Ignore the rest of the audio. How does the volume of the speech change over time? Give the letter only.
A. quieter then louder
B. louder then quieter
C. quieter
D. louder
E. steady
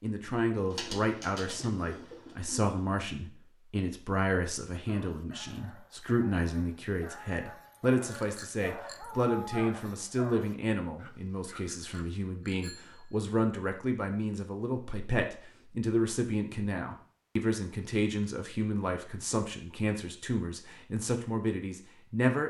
E.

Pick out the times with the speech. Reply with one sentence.
The speech can be heard from 0.0 to 22.4 s.